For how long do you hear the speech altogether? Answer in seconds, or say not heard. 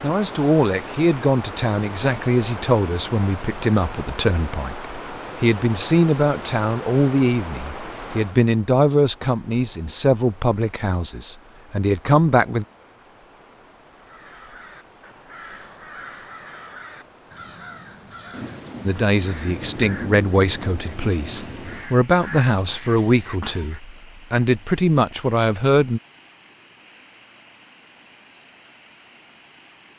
20 s.